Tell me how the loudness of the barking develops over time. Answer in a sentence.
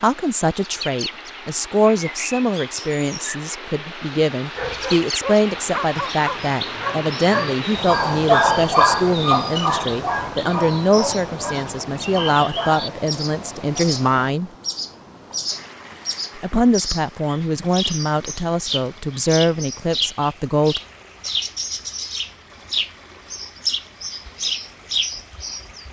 The loudness of the barking goes up, then down.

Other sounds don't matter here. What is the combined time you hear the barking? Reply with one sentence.
You can hear the barking for 8 seconds altogether.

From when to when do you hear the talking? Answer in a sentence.
You can hear the talking from 0.0 to 14.5 s and from 16.4 to 20.8 s.